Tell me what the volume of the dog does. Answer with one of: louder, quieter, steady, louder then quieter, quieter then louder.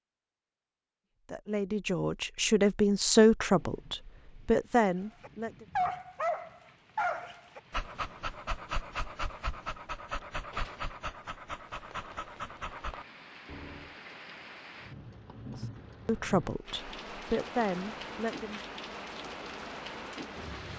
quieter.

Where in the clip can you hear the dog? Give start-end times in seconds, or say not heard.
5.2-13.9.